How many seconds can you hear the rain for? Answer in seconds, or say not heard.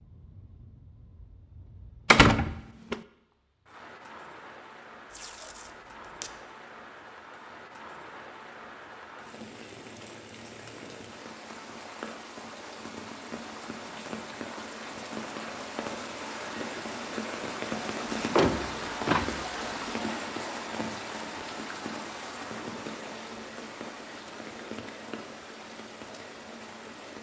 27 s.